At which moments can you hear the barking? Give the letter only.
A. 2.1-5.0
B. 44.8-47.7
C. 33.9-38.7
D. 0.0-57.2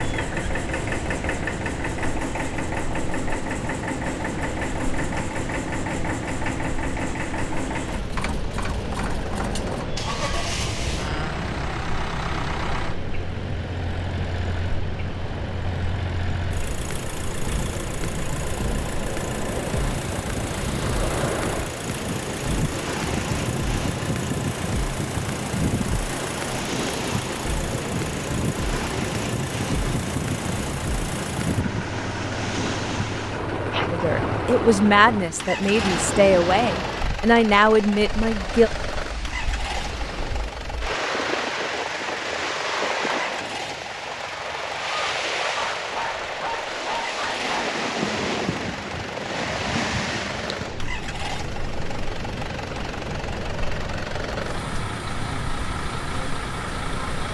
B.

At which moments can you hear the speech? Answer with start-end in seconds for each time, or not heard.
33.9-38.7.